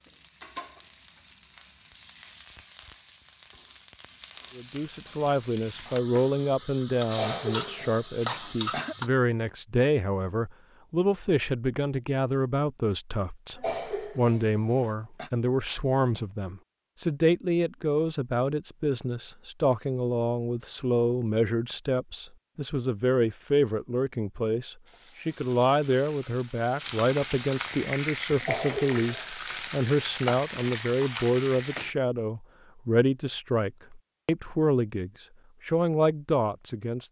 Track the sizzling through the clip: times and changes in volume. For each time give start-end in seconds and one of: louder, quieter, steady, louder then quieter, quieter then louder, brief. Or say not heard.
0.0-9.1 louder
24.9-31.9 louder.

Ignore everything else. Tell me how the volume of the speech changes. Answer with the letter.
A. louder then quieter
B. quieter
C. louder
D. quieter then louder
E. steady
E.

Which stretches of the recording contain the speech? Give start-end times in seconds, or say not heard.
4.5-37.0.